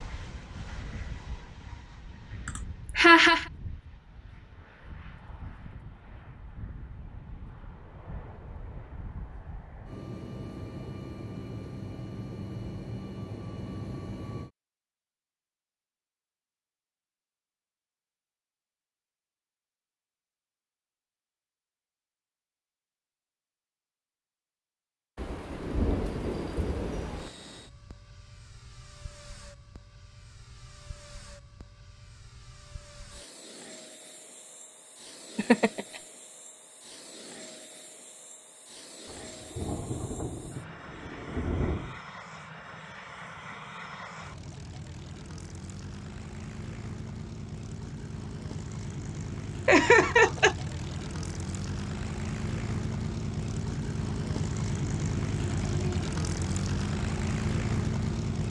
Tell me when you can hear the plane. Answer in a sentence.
You can hear the plane from 0.0 to 14.5 s and from 27.1 to 58.4 s.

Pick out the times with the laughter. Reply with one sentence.
You can hear the laughter from 2.5 to 3.5 s, from 35.4 to 35.9 s and from 49.6 to 50.5 s.